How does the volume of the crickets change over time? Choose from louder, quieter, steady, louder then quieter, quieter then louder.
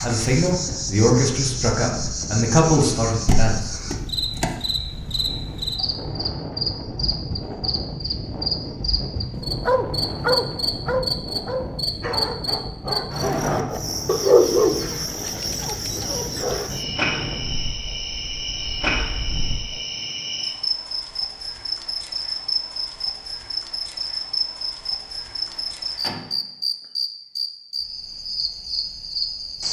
steady.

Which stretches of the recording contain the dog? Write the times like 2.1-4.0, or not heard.
9.7-16.7.